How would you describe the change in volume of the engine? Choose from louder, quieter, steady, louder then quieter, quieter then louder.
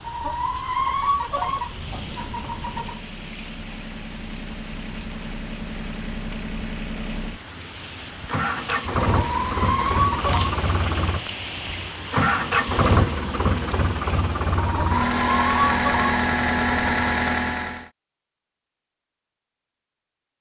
louder.